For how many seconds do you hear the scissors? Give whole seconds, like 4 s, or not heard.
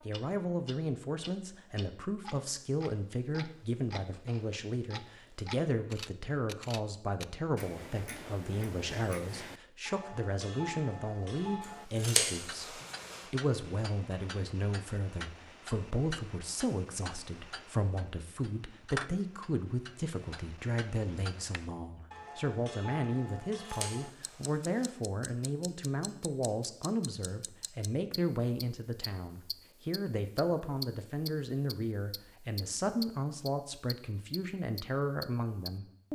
3 s.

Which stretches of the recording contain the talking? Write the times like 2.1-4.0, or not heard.
0.1-36.1.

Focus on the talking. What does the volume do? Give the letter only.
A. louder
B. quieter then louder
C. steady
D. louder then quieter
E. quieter
C.